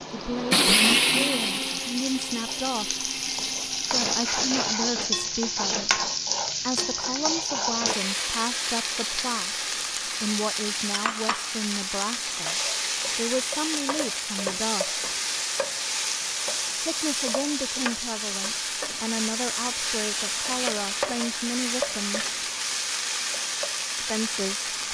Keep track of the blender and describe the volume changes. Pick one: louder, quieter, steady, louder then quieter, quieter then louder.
quieter.